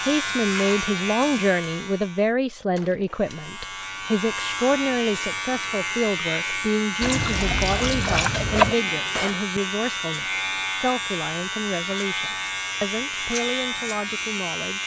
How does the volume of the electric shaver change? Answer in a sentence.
The loudness of the electric shaver stays about the same.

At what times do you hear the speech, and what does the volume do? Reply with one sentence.
You can hear the speech from 0.0 to 14.8 s, getting quieter.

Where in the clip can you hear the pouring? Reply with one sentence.
You can hear the pouring from 7.0 to 8.8 s.